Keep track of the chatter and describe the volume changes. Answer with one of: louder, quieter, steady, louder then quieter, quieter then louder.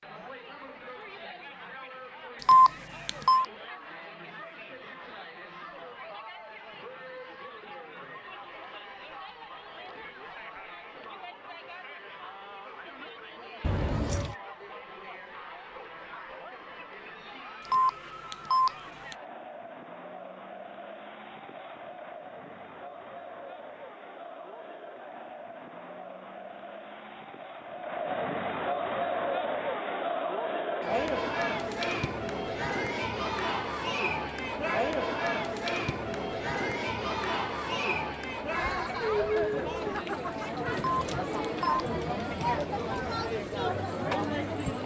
louder.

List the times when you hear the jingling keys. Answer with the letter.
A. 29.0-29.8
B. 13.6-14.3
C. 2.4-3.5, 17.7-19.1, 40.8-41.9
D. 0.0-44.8
B.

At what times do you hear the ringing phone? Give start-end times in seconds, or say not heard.
2.4-3.5, 17.7-19.1, 40.8-41.9.